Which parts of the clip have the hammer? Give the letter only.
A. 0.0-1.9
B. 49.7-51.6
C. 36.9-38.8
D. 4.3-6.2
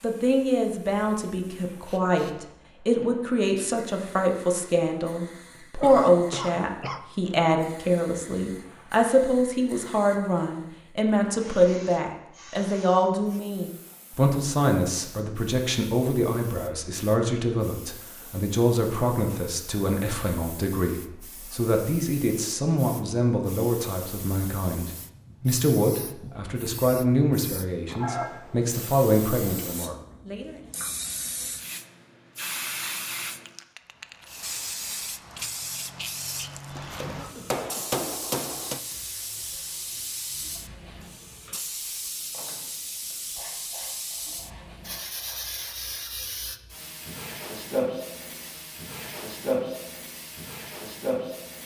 C.